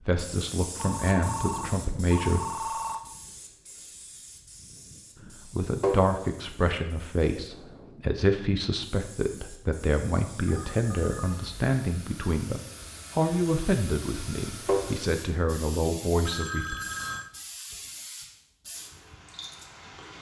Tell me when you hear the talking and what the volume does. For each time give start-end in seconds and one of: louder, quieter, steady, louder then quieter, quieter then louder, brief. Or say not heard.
0.1-2.9 brief
5.5-16.8 steady.